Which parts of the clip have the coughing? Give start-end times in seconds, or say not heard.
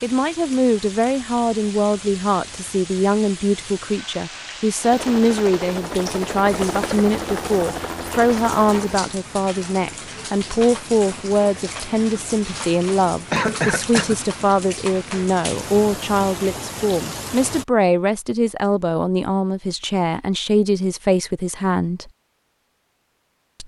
13.3-14.2.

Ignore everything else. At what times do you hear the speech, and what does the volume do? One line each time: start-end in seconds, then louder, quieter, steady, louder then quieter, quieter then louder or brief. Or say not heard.
0.0-22.1 steady.